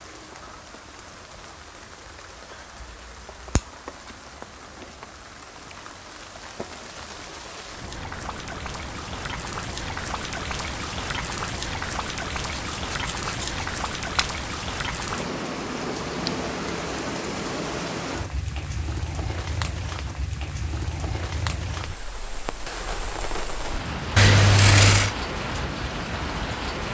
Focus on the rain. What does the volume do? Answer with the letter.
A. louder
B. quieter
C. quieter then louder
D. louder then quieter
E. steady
A.